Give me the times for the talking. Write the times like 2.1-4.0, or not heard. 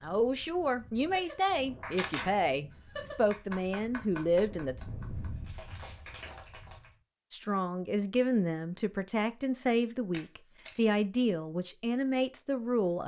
0.0-4.8, 7.3-13.0.